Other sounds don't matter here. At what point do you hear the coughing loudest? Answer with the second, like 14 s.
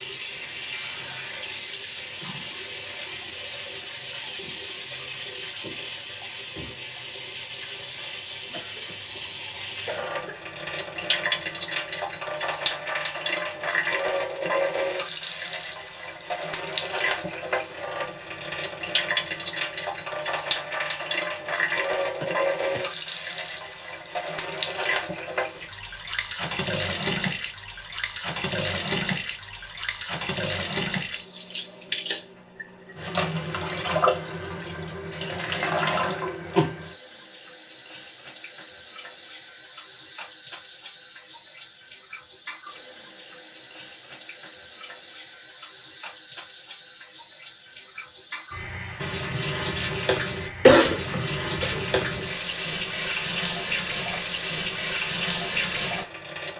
51 s.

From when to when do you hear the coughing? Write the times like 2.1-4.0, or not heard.
8.5-10.4, 22.2-22.9, 50.6-52.0.